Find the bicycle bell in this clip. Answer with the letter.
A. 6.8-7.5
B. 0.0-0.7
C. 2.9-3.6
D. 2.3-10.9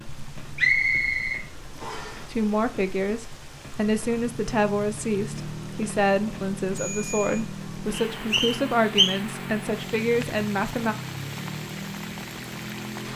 A.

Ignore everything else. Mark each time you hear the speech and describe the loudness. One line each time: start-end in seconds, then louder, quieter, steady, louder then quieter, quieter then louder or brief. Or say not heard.
2.3-10.9 steady.